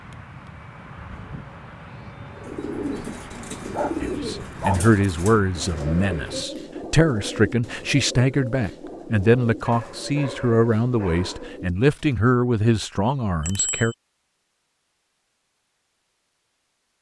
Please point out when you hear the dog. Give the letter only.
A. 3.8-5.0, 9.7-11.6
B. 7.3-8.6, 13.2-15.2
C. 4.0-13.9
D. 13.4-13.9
A.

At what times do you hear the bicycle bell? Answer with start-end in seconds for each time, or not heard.
13.4-13.9.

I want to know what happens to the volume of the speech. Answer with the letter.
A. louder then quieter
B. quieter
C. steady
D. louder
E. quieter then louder
C.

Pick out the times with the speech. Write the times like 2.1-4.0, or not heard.
4.0-13.9.